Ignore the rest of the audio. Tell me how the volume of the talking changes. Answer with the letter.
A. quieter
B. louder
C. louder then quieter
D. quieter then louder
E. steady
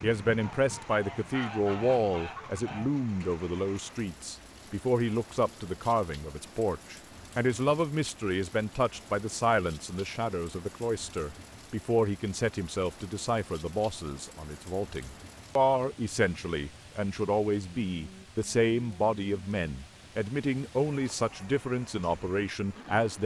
E.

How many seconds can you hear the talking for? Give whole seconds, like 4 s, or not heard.
23 s.